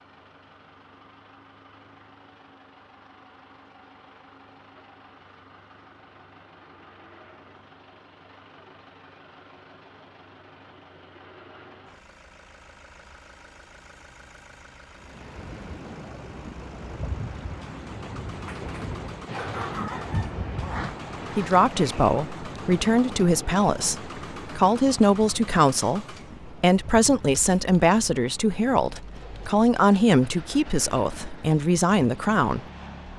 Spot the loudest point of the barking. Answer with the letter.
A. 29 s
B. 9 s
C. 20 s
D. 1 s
C.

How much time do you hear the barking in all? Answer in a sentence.
The barking can be heard for 2 seconds in total.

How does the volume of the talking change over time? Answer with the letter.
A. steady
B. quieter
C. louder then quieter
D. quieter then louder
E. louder
A.